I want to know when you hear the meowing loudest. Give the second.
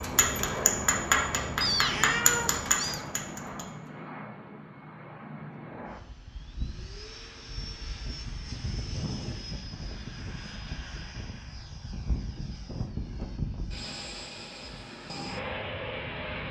2 s.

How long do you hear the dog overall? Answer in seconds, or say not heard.
not heard.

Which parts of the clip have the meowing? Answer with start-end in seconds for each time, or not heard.
1.6-3.0.